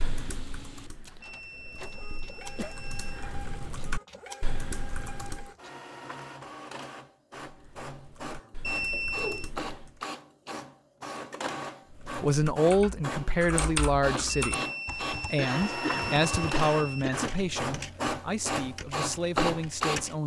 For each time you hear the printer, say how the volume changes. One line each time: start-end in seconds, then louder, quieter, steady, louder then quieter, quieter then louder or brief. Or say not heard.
0.0-20.2 louder.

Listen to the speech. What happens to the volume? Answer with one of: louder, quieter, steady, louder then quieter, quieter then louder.
quieter.